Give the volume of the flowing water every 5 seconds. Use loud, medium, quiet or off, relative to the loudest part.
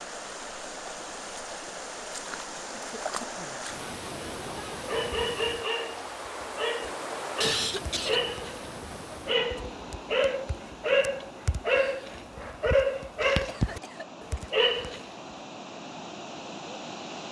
loud, loud, medium, loud.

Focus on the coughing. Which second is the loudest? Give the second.
8 s.